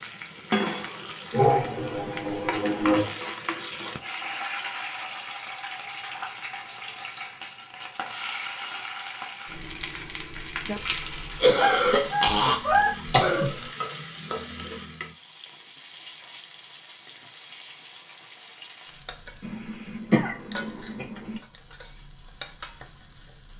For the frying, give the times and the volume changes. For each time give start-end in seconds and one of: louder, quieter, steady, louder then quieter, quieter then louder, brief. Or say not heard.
0.0-23.5 quieter.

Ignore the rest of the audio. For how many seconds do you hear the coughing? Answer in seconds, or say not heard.
6 s.